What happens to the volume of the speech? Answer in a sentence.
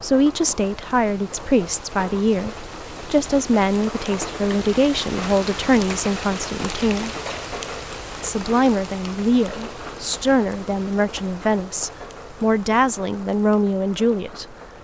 The volume of the speech stays about the same.